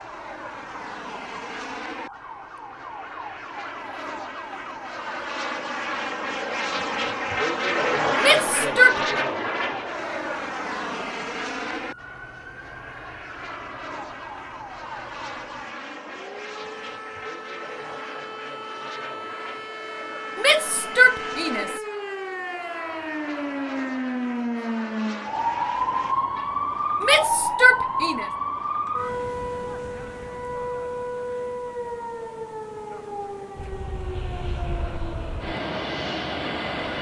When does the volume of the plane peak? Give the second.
8 s.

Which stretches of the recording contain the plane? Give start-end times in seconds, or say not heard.
0.0-26.1, 33.5-36.9.